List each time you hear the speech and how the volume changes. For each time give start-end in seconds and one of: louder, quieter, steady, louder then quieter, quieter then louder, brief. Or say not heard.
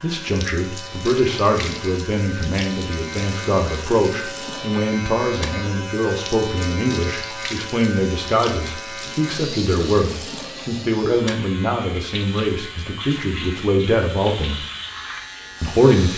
0.0-14.6 steady
15.6-16.1 brief.